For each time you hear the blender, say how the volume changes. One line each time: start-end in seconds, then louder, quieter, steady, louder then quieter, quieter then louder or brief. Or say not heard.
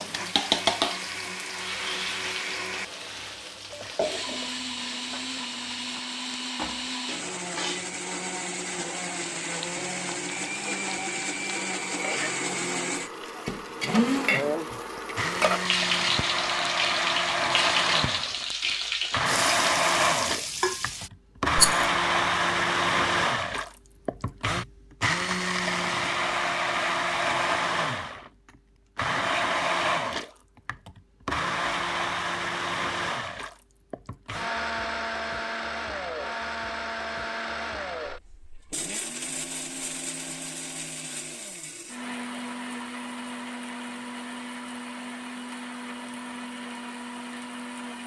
0.0-48.0 louder then quieter.